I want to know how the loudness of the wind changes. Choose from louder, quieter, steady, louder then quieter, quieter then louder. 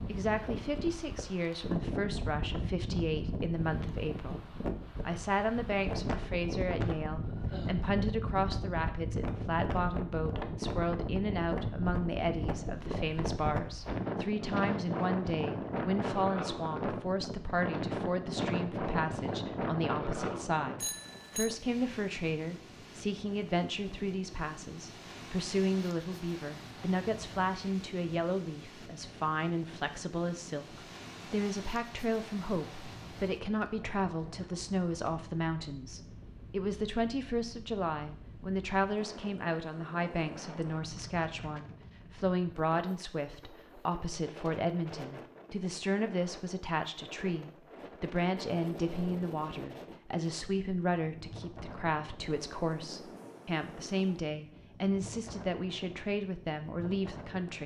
quieter.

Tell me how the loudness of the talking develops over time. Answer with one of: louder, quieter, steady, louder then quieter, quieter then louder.
steady.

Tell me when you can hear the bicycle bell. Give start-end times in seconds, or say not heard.
20.8-21.6.